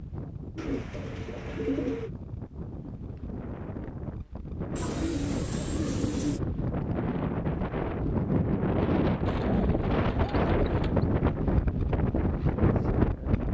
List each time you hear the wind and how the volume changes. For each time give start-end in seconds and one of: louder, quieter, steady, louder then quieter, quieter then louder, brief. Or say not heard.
0.0-13.5 louder.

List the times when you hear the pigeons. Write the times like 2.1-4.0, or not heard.
0.6-2.1, 4.8-6.4, 9.2-11.1.